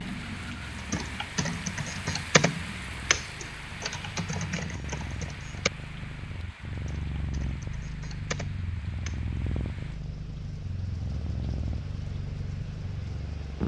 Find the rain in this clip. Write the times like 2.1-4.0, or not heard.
0.0-13.6.